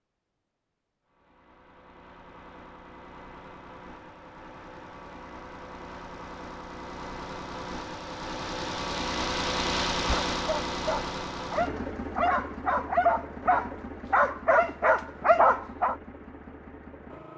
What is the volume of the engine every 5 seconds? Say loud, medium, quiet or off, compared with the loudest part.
quiet, loud, loud, medium.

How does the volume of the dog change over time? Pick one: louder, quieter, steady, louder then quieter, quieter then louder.
louder.